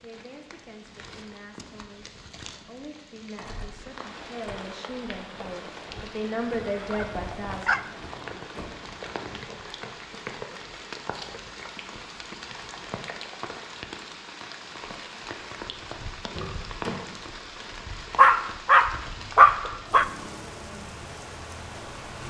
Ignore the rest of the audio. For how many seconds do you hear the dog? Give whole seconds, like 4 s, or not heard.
3 s.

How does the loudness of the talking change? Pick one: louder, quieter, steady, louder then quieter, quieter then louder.
louder.